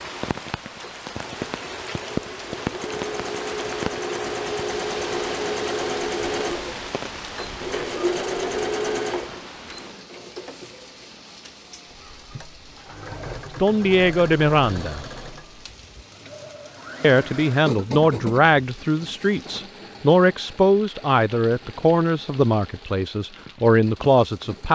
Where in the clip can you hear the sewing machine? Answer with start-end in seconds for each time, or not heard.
0.0-24.6.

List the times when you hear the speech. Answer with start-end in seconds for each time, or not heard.
13.6-15.1, 17.0-24.6.